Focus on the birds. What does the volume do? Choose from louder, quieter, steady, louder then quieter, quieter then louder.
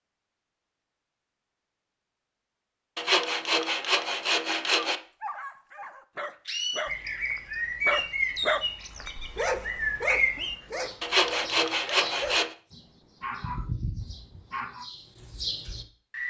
quieter.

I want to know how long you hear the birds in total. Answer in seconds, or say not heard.
10 s.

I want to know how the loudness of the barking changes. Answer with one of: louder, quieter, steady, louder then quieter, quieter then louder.
louder then quieter.